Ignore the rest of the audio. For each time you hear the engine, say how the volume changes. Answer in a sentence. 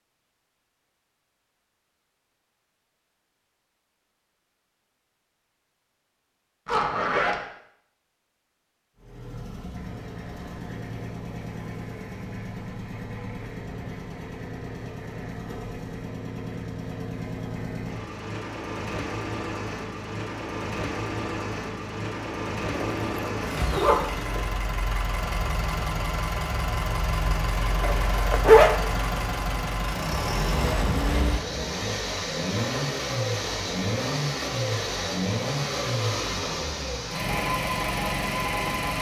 The engine can be heard from 8.9 to 38.9 s, getting louder.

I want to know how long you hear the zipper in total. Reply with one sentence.
The zipper can be heard for 3 seconds in total.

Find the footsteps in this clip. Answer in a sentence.
You can't hear the footsteps here.